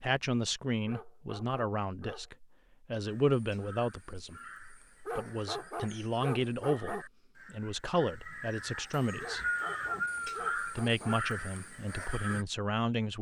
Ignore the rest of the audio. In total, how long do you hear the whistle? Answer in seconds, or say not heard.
2 s.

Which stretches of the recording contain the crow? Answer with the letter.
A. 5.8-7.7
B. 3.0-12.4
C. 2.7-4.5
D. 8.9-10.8
B.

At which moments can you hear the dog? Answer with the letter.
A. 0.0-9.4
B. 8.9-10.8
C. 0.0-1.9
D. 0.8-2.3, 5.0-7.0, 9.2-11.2
D.